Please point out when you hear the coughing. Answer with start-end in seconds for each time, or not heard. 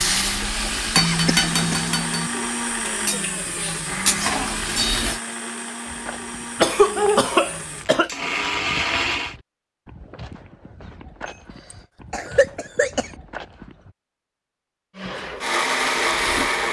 0.9-1.9, 6.5-8.1, 11.7-13.1.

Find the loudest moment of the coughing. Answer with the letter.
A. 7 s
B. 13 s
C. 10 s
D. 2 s
A.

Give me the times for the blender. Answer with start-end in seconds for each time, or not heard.
0.0-9.3, 14.9-16.6.